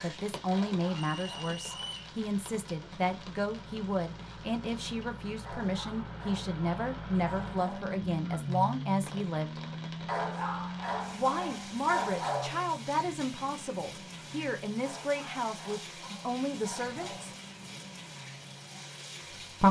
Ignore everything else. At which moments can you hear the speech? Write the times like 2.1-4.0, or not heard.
0.0-9.6, 11.1-17.3.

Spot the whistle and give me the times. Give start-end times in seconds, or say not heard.
0.9-2.1.